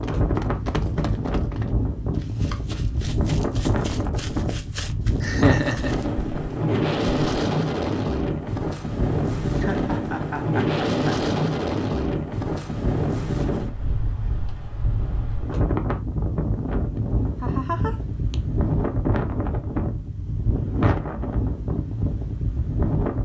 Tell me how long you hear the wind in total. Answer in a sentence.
The wind can be heard for 23 seconds in total.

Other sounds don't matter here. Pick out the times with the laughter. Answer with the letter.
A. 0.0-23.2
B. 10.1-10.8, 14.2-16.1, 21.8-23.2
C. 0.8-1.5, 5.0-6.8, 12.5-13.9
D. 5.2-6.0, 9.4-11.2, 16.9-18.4
D.